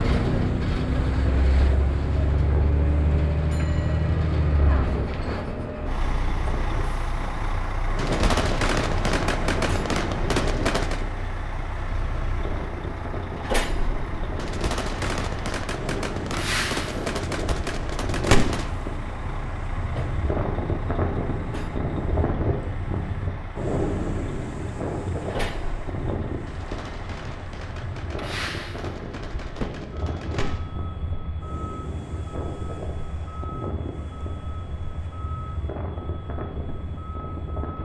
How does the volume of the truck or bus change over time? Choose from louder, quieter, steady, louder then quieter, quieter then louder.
quieter.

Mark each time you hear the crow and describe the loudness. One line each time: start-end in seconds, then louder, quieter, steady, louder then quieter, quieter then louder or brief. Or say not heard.
not heard.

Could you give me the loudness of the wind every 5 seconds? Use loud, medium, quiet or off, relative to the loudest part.
medium, medium, medium, medium, loud, medium, medium, medium.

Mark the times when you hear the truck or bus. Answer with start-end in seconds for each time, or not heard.
0.0-37.8.